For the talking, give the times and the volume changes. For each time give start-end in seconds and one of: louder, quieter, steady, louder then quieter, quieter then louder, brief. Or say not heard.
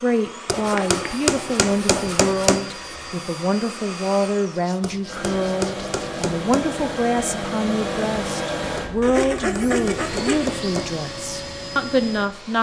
0.0-12.5 steady.